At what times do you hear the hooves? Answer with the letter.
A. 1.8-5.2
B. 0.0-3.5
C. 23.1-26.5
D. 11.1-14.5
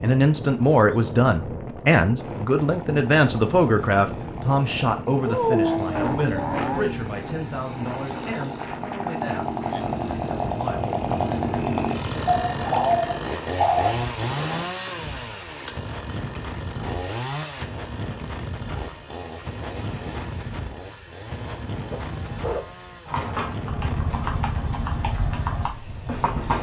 C.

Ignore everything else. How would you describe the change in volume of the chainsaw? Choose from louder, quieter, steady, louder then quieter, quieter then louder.
louder then quieter.